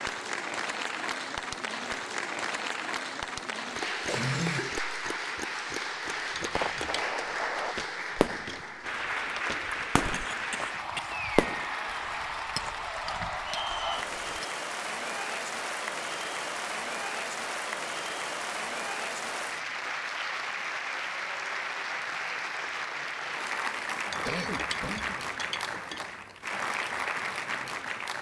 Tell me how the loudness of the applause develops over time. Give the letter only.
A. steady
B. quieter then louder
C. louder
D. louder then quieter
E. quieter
A.